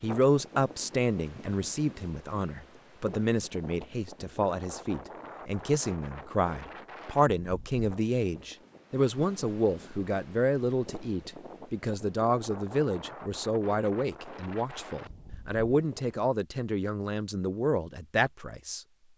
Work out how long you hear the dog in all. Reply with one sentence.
The dog can't be heard in this clip.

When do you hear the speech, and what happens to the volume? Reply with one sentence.
You can hear the speech from 0.0 to 18.8 s, at a steady volume.